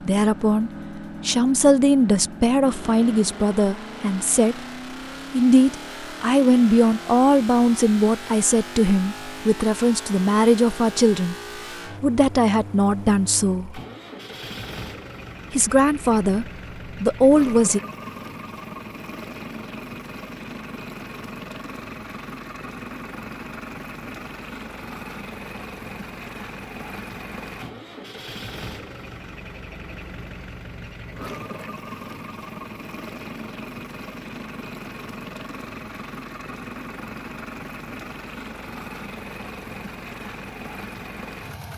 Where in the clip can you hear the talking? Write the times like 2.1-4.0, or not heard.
0.1-4.6, 5.3-11.3, 12.0-13.8, 15.5-17.8.